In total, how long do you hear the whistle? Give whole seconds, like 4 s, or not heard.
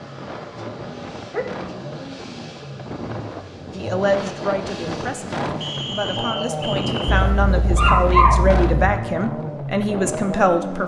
2 s.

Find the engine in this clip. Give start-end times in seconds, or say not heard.
0.0-10.8.